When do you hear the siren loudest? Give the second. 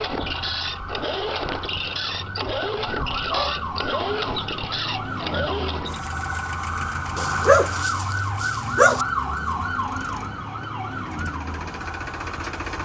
9 s.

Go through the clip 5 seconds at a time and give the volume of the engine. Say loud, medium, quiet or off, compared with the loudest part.
loud, medium, medium.